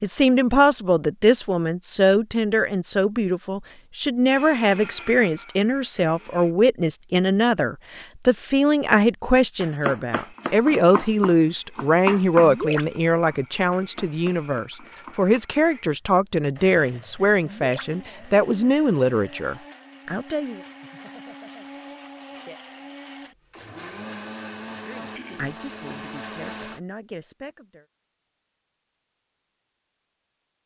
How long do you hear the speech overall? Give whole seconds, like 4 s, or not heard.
24 s.